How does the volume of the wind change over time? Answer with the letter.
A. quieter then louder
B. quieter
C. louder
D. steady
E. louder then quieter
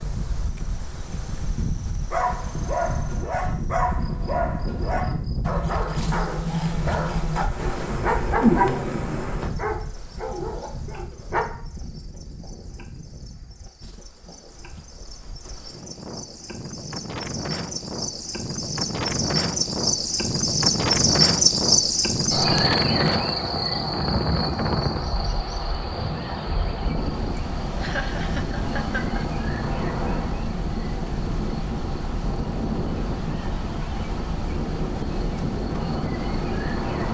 A.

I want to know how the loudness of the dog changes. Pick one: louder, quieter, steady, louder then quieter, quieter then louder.
louder then quieter.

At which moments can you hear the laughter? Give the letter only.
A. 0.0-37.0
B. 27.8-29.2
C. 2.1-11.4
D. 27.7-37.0
B.